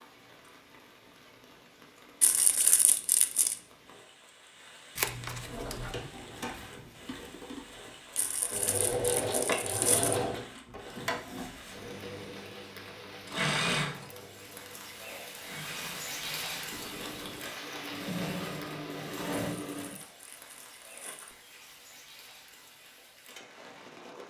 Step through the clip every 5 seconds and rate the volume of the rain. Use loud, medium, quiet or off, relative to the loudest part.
quiet, medium, medium, loud, medium.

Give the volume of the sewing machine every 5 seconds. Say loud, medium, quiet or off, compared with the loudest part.
off, loud, loud, loud, off.